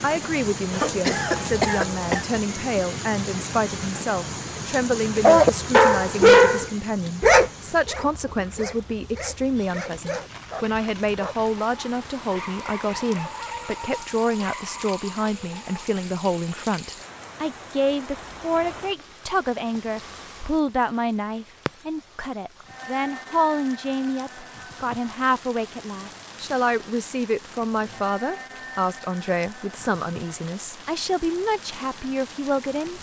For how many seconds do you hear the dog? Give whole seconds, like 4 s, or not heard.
11 s.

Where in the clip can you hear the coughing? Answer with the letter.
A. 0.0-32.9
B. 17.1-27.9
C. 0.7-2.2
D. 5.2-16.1
C.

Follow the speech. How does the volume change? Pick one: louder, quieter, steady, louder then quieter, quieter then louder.
steady.